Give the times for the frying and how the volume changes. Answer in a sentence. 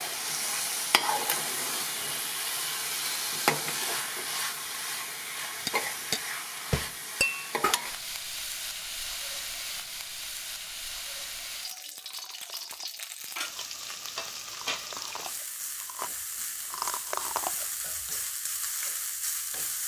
You can hear the frying from 0.0 to 19.8 s, getting quieter.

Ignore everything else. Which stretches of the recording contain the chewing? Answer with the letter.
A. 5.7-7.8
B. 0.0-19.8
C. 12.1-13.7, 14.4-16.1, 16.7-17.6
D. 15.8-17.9
C.